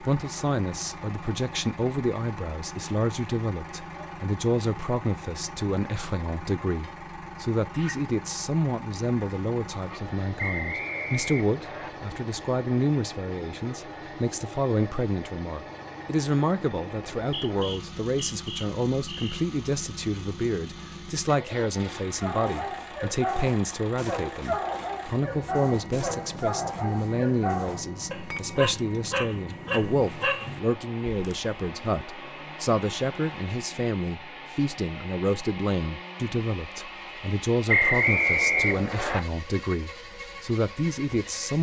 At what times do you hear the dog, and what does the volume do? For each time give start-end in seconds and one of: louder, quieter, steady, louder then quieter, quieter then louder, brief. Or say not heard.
22.2-31.4 steady.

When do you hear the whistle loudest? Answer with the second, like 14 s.
38 s.